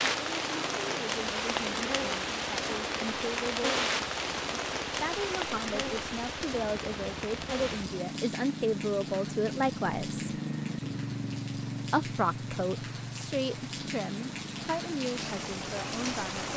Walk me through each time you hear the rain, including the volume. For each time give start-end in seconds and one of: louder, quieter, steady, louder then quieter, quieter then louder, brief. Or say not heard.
0.0-16.5 quieter then louder.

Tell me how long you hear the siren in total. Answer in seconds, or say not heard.
not heard.